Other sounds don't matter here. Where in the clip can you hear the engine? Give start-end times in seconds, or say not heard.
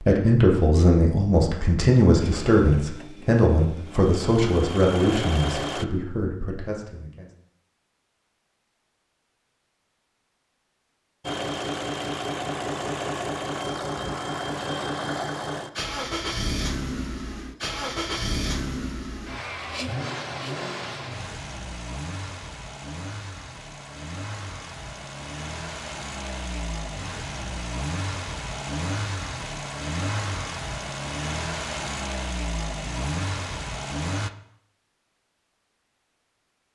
2.1-5.8, 11.2-34.3.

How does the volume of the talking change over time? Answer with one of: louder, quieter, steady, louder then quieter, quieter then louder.
quieter.